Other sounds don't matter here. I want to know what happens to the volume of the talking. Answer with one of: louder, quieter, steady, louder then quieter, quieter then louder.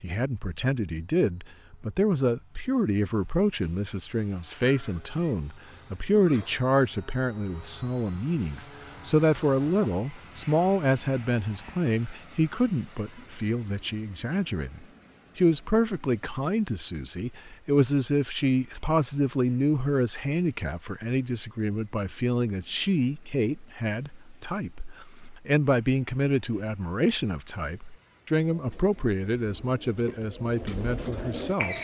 steady.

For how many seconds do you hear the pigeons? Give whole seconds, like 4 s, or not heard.
3 s.